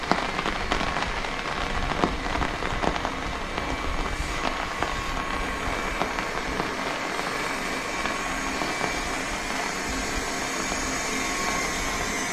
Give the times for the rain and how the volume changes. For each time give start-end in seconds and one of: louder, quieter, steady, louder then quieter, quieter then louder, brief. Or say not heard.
0.0-12.2 quieter.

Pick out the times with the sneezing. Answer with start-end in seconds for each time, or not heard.
not heard.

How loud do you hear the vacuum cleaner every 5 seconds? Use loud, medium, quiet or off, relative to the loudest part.
medium, loud, loud.